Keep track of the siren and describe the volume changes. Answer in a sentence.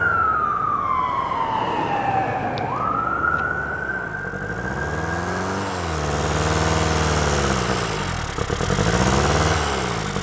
The volume of the siren goes down.